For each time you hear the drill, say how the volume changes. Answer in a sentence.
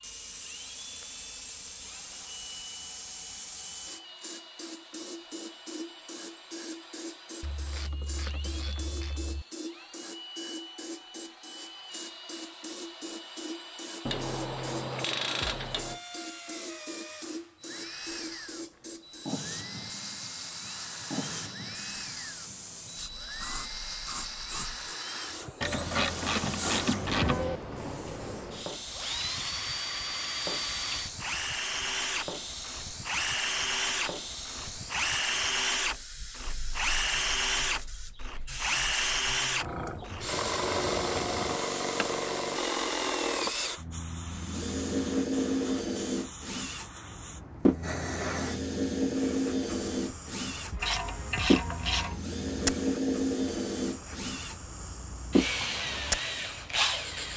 The drill can be heard from 0.0 to 57.3 s, getting louder.